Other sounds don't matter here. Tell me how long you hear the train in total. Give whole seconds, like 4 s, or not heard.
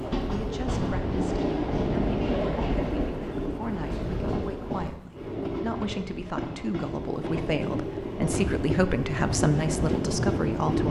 11 s.